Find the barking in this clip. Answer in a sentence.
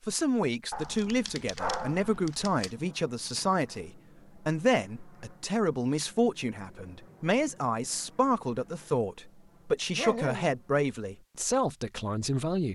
You can hear the barking from 0.7 to 2.7 s and from 9.9 to 10.6 s.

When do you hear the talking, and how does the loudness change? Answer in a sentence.
You can hear the talking from 0.0 to 12.6 s, at a steady volume.